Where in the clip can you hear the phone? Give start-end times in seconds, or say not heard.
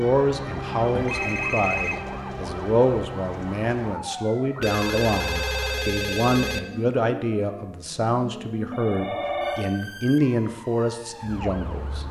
0.9-2.0, 4.6-6.6, 8.7-9.7.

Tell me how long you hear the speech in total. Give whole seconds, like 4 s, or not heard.
12 s.